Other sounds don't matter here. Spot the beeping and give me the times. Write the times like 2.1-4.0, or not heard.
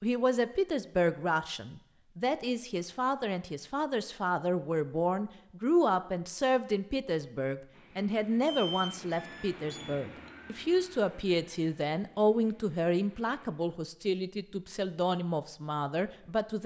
8.4-10.3.